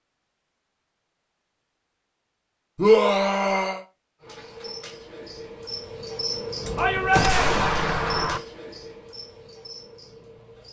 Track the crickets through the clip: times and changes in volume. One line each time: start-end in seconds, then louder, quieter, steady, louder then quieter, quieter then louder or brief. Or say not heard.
4.2-10.6 louder then quieter.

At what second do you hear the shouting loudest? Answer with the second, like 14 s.
3 s.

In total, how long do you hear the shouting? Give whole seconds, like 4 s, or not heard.
2 s.